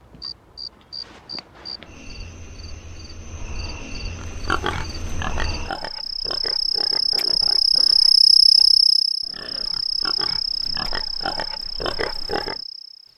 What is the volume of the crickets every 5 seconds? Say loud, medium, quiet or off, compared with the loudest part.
quiet, loud, medium.